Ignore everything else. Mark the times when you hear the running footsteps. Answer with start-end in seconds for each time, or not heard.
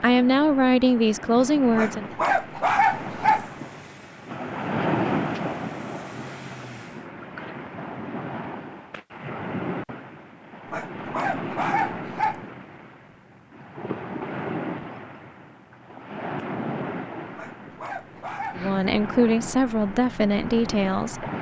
not heard.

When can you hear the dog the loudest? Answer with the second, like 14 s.
3 s.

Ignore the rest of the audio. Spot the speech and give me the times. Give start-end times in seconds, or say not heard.
0.0-2.1, 18.6-21.2.